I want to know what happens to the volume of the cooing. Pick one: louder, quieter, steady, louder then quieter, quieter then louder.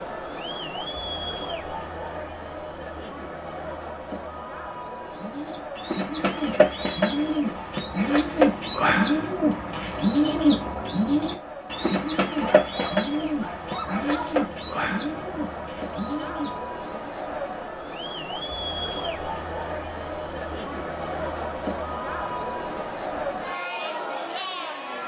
quieter.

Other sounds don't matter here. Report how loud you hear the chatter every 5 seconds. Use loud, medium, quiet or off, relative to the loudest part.
loud, medium, medium, loud, loud.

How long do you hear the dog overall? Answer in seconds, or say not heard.
2 s.